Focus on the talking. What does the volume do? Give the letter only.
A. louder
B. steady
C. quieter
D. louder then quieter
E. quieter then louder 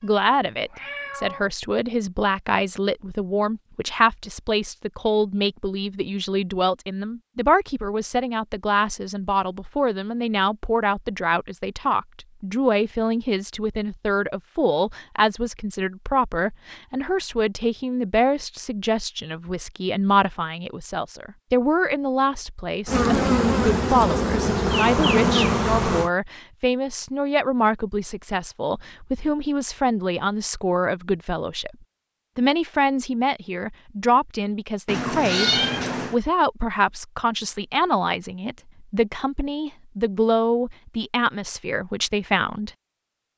B.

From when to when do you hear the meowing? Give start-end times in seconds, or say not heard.
0.0-1.5, 34.9-36.1.